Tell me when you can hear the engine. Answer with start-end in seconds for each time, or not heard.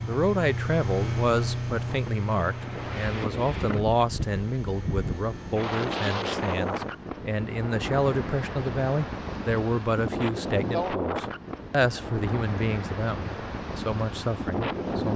0.0-6.9.